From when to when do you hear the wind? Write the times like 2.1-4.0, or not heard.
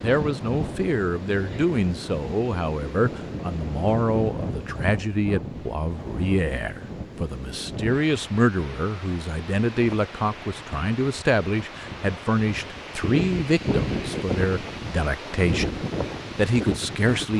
0.0-17.3.